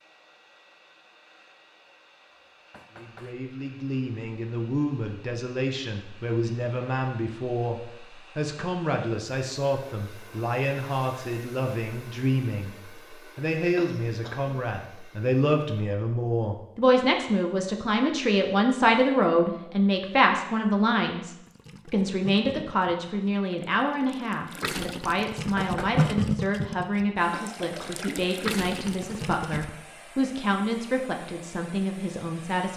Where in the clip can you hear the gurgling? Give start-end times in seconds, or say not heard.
21.4-29.7.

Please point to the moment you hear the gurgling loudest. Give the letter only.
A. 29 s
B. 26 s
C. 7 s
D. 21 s
B.